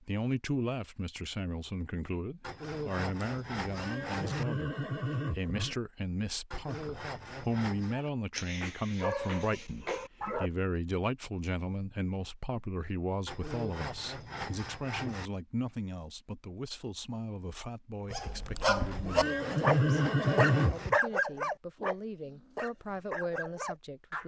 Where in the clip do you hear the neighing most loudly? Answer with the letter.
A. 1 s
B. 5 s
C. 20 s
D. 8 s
C.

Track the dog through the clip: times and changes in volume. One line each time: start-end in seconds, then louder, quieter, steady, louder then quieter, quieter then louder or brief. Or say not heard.
7.9-10.5 brief
18.1-24.2 quieter.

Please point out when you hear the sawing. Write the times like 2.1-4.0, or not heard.
2.4-4.5, 6.5-8.0, 13.2-15.3, 18.9-20.9.